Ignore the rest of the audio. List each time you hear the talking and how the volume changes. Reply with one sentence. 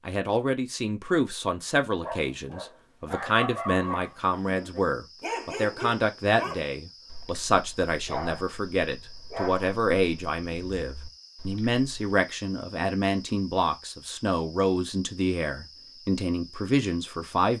The talking can be heard from 0.1 to 17.5 s, at a steady volume.